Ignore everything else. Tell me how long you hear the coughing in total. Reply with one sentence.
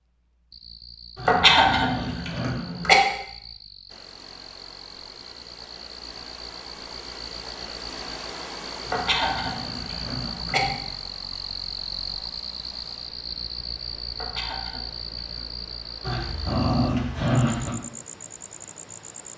You can hear the coughing for 5 seconds altogether.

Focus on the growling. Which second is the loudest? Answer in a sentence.
The loudest moment of the growling is at 17 seconds.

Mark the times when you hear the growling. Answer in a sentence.
The growling can be heard from 1.1 to 2.6 s, from 8.8 to 10.8 s and from 16.0 to 17.8 s.